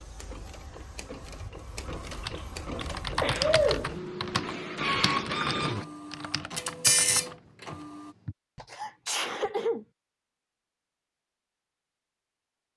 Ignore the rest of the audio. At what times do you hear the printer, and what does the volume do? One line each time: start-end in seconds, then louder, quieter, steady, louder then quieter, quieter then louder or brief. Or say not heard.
0.0-8.2 louder.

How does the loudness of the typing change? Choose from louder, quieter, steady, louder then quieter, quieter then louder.
quieter.